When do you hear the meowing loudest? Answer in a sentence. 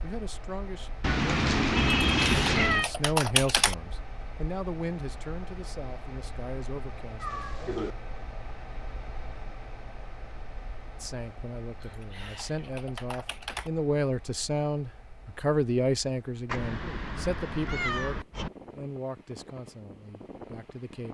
The loudest moment of the meowing is at 2 seconds.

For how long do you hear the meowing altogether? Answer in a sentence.
The meowing can be heard for 5 seconds in total.